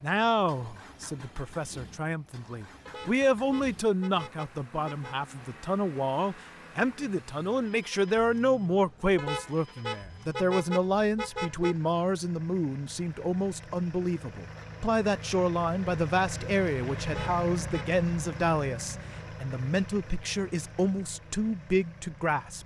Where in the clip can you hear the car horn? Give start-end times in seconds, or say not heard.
2.9-5.2, 9.2-11.8, 17.1-17.9.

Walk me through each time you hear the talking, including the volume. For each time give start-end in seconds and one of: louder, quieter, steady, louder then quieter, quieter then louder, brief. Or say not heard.
0.0-22.6 steady.